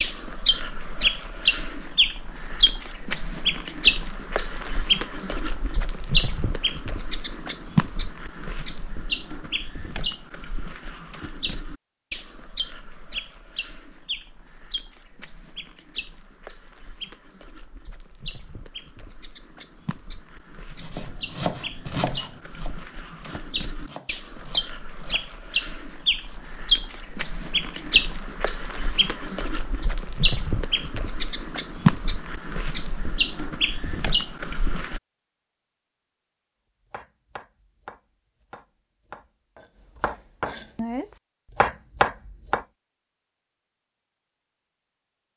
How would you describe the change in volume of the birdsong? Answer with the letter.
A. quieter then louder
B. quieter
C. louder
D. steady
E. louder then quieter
A.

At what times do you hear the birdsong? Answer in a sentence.
You can hear the birdsong from 0.0 to 35.0 s.